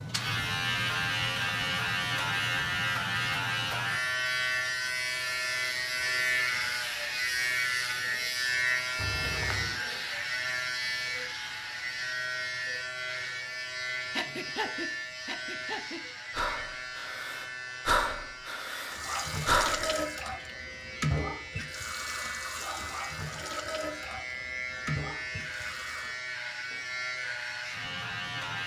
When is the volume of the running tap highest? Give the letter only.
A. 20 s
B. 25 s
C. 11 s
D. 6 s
A.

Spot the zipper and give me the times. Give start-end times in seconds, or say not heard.
8.9-9.8.